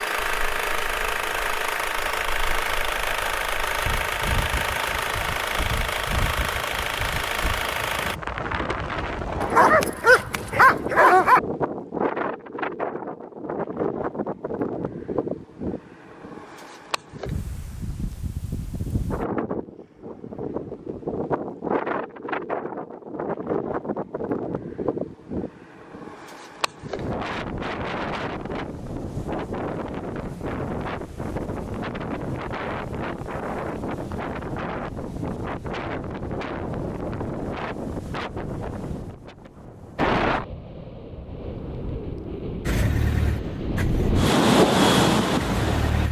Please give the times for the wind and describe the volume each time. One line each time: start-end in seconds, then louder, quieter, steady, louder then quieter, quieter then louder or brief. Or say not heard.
0.1-46.0 louder.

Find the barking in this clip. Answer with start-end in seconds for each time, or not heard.
9.4-11.4.